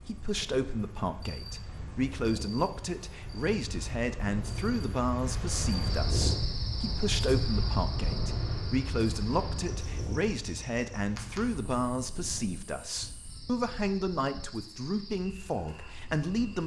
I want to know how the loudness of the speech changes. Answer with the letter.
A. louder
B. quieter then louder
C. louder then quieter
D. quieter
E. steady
E.